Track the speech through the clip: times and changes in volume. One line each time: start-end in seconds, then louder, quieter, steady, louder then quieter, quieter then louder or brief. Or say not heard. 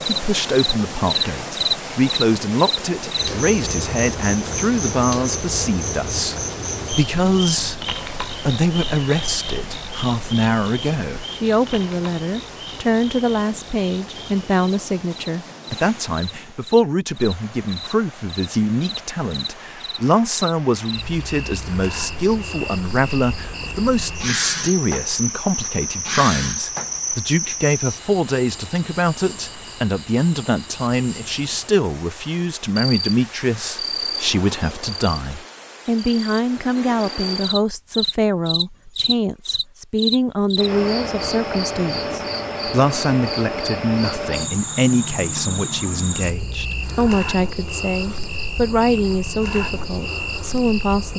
0.1-51.1 steady.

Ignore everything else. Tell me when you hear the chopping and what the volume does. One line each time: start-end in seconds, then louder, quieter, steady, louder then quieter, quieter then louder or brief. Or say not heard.
not heard.